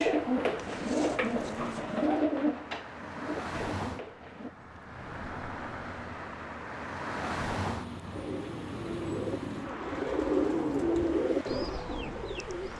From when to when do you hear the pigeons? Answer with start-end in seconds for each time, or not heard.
0.0-4.5, 8.2-12.7.